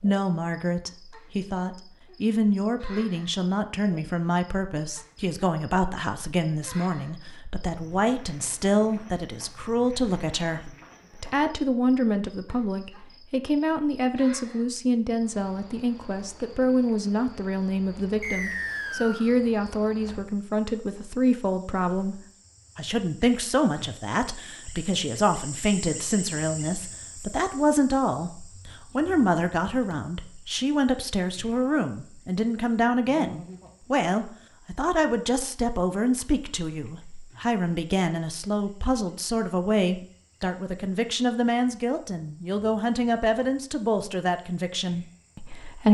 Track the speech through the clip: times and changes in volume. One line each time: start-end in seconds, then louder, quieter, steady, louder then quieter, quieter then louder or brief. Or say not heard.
0.0-45.8 steady.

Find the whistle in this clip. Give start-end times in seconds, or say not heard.
18.2-19.3.